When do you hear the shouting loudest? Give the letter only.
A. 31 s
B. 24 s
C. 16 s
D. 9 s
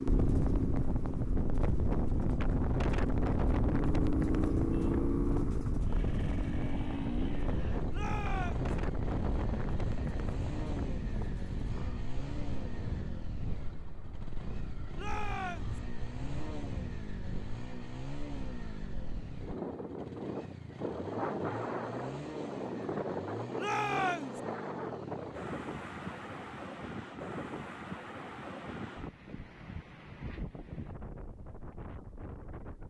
B.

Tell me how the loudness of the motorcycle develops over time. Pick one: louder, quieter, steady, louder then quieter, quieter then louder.
quieter.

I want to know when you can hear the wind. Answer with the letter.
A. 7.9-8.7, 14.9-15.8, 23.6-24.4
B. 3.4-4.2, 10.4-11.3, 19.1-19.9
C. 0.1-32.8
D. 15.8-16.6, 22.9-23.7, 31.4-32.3
C.